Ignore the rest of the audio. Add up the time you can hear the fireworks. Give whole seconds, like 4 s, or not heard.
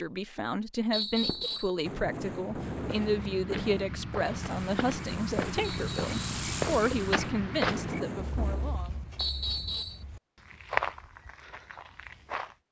8 s.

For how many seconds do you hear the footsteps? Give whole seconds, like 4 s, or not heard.
10 s.